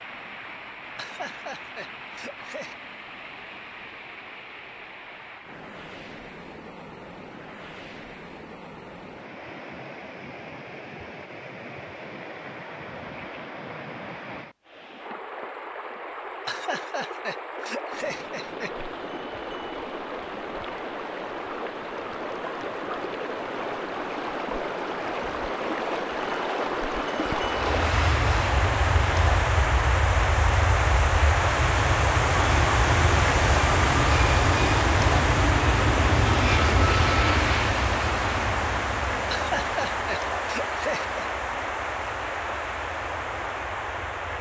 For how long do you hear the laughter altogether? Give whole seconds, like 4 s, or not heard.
6 s.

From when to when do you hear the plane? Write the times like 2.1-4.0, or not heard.
27.4-44.3.